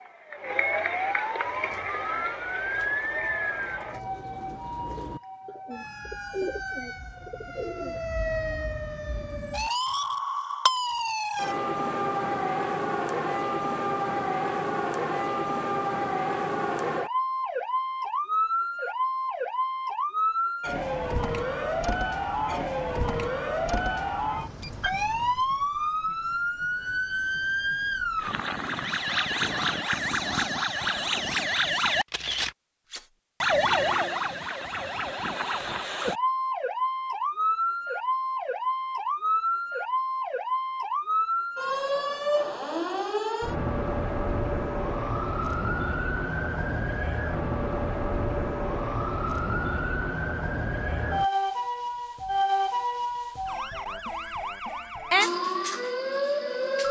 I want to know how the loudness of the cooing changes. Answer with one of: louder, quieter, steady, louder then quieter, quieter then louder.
louder.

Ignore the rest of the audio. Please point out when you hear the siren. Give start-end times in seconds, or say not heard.
0.0-56.8.